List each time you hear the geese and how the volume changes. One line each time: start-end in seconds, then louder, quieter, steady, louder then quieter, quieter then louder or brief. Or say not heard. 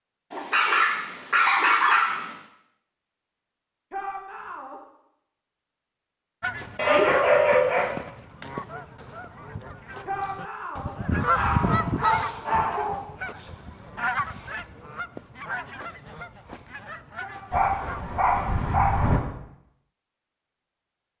6.4-18.1 louder then quieter.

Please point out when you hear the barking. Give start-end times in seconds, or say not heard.
0.3-2.3, 6.8-7.8, 11.3-13.1, 17.5-19.2.